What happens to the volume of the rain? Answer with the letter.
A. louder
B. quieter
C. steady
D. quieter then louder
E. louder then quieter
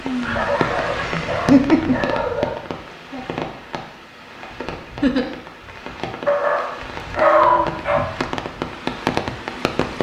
D.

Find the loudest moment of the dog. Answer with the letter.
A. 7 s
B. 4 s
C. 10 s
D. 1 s
A.